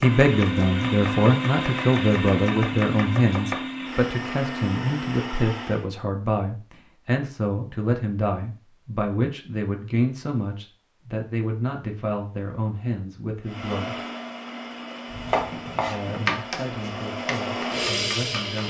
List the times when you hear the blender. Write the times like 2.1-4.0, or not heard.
0.0-5.8, 13.4-18.6.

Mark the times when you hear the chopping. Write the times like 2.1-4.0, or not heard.
0.0-3.6, 15.1-18.6.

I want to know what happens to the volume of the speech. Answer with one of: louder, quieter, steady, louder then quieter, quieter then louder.
quieter.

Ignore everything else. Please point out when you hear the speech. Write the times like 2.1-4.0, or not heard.
0.0-13.9, 15.6-18.6.